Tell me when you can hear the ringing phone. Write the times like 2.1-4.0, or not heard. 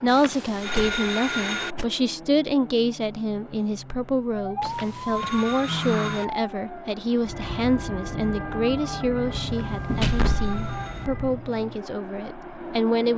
0.1-1.8, 4.6-6.2, 9.4-11.1.